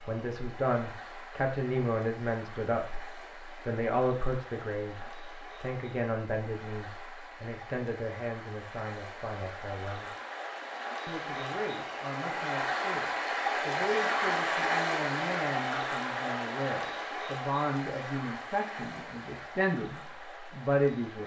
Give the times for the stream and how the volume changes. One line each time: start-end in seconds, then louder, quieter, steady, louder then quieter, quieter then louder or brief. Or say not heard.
0.0-21.2 louder then quieter.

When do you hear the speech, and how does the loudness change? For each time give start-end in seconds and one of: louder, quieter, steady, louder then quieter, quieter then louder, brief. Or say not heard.
0.1-10.2 quieter
11.1-21.2 louder.